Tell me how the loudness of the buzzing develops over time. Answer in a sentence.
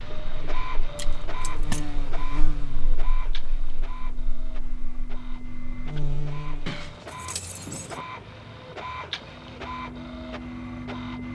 The loudness of the buzzing goes down, then up.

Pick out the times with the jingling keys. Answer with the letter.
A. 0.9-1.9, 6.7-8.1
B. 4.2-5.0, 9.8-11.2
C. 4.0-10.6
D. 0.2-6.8
A.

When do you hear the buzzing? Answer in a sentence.
You can hear the buzzing from 0.2 to 6.8 s.